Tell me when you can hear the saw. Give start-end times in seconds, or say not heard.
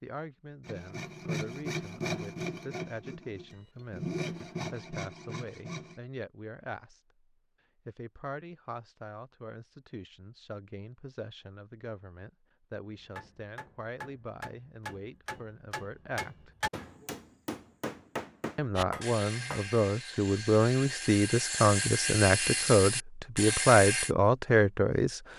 0.7-6.0, 18.8-24.1.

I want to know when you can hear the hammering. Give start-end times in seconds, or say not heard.
12.9-19.6.